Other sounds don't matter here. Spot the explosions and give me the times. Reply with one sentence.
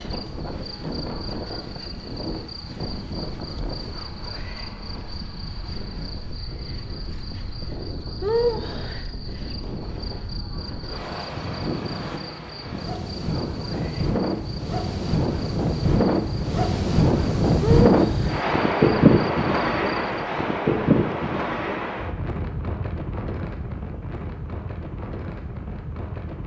You can't hear the explosions here.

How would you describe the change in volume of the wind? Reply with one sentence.
The loudness of the wind goes up, then down.